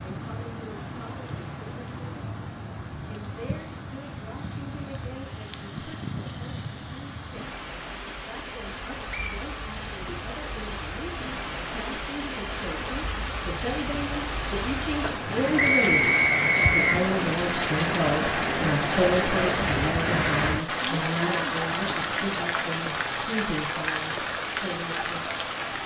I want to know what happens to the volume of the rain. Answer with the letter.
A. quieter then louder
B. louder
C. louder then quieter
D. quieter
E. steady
B.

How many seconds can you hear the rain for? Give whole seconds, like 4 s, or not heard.
26 s.